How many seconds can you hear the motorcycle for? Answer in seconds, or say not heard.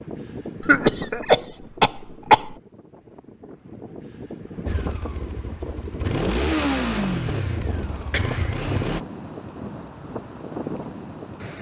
4 s.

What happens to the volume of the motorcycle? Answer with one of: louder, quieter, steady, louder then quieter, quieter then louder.
louder then quieter.